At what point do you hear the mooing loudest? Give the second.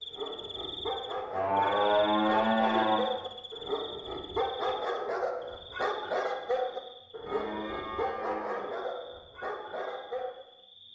2 s.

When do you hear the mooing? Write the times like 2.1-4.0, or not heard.
1.3-3.0, 7.2-8.8.